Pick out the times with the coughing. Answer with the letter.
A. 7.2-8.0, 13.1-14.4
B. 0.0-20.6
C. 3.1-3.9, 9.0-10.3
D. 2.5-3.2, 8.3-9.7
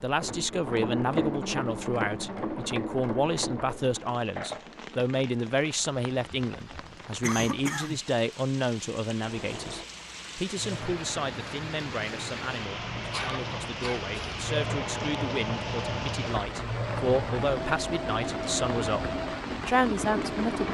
A.